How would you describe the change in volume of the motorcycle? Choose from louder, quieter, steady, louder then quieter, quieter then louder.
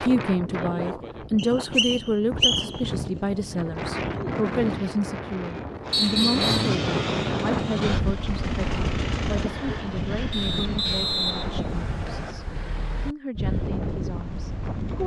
quieter.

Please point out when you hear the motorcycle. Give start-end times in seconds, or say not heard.
5.8-11.1.